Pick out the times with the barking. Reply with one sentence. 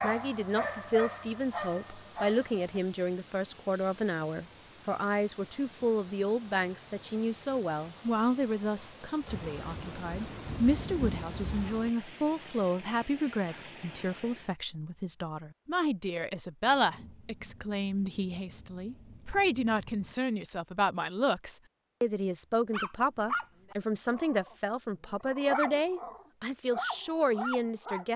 You can hear the barking from 0.0 to 2.8 s and from 22.7 to 28.1 s.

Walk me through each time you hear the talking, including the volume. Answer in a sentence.
You can hear the talking from 0.0 to 28.1 s, at a steady volume.